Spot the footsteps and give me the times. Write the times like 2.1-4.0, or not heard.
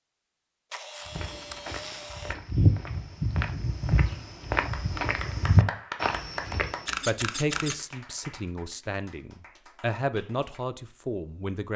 1.1-6.9.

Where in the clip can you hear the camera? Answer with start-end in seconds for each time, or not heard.
0.7-2.4, 6.8-7.8.